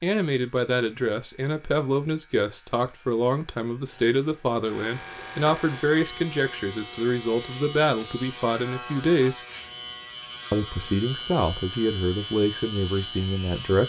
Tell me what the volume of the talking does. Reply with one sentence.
The volume of the talking stays about the same.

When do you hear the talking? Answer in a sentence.
You can hear the talking from 0.0 to 9.4 s and from 10.5 to 13.8 s.